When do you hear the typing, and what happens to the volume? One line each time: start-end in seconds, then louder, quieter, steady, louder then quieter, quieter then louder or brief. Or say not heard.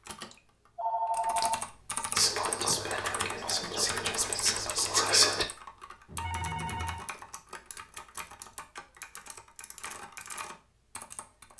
0.0-11.5 quieter.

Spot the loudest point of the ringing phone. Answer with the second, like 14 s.
1 s.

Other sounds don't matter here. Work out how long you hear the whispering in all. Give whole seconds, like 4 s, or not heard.
3 s.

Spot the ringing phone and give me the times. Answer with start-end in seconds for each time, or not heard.
0.2-2.0, 6.0-7.0.